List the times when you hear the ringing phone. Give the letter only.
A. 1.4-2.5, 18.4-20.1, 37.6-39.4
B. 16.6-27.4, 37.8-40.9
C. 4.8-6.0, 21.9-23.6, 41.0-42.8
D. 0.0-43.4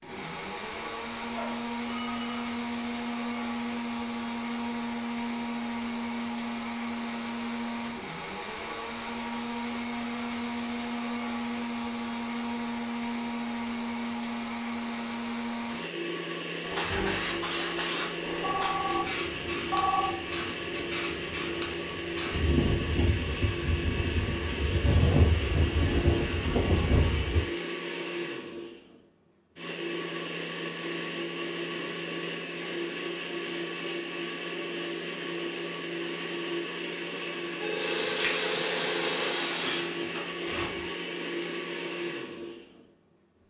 A.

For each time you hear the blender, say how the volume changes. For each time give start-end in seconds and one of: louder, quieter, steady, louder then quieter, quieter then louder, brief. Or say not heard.
0.0-43.4 steady.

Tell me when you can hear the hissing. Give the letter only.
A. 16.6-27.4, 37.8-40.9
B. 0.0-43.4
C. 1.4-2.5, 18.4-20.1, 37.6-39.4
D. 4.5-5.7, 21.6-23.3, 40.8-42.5
A.